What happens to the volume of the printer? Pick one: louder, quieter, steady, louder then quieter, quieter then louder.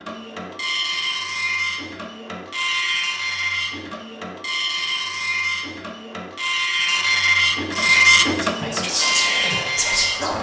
louder.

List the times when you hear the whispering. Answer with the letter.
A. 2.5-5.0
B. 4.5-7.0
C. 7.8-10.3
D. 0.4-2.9
C.